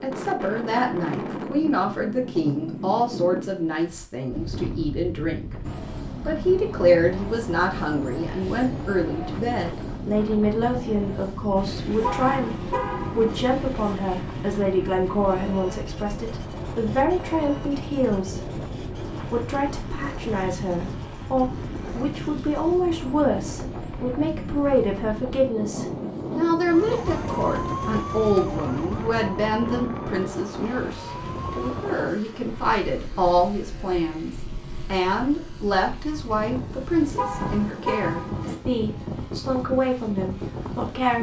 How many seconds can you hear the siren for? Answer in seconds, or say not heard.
5 s.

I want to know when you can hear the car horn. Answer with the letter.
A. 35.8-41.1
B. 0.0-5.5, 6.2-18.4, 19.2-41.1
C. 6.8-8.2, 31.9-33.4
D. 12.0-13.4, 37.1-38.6
D.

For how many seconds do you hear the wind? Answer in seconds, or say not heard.
41 s.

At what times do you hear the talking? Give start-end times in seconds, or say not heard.
0.0-5.5, 6.2-18.4, 19.2-41.1.